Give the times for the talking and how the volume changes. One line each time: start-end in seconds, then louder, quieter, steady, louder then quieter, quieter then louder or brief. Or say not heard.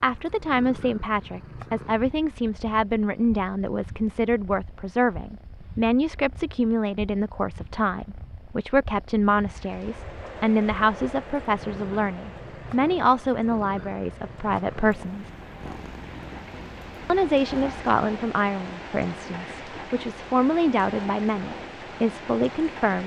0.0-15.3 steady
17.1-23.0 quieter then louder.